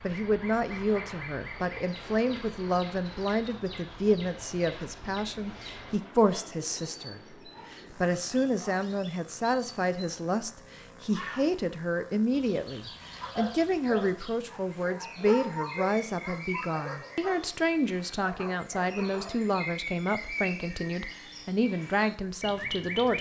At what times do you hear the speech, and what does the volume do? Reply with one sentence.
The speech can be heard from 0.0 to 23.1 s, at a steady volume.